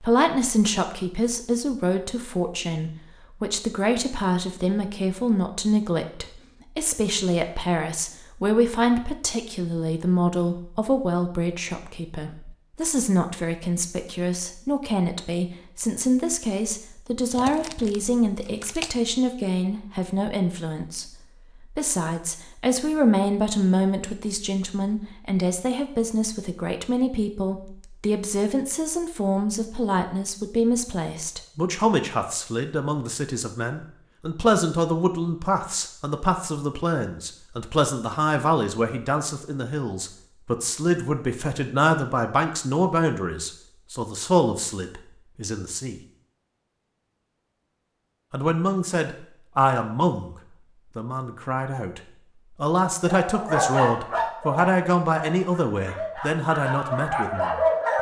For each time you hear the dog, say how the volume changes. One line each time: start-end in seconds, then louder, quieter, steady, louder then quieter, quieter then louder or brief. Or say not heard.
53.0-57.9 quieter then louder.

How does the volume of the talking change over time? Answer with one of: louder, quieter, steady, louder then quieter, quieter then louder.
steady.